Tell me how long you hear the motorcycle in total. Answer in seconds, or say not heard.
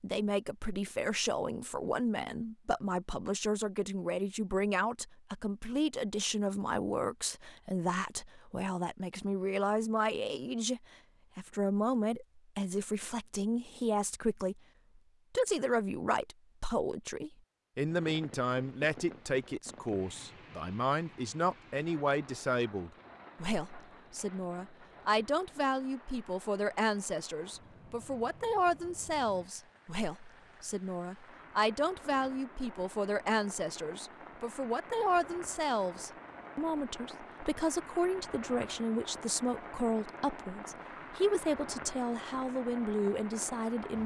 not heard.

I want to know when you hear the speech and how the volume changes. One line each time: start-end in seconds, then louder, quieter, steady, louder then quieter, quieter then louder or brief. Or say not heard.
0.0-14.6 steady
15.3-44.0 steady.